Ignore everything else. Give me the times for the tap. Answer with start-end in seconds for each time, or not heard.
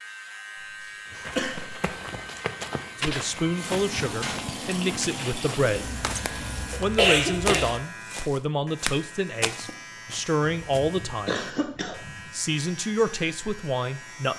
3.5-6.8.